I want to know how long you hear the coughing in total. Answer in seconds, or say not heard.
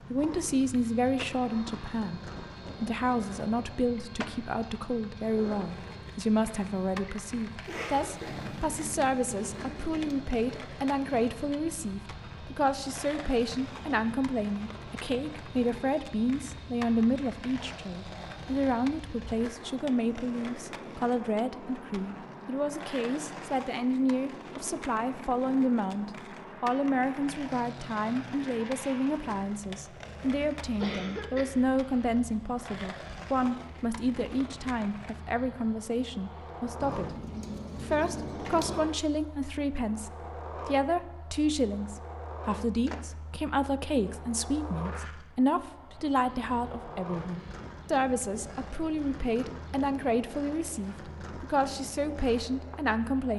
2 s.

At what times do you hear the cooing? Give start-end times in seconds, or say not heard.
8.2-10.2, 36.8-38.8.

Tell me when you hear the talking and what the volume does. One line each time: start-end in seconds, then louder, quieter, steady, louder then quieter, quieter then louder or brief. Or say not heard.
0.1-37.1 steady
37.8-53.3 steady.